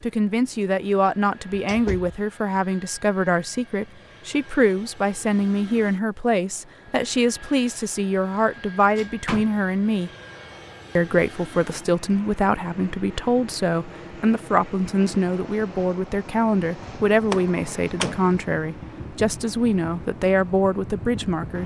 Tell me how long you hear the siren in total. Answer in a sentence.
You can't hear the siren here.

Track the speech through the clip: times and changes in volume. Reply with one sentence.
You can hear the speech from 0.0 to 10.1 s, at a steady volume; and from 10.9 to 21.6 s, at a steady volume.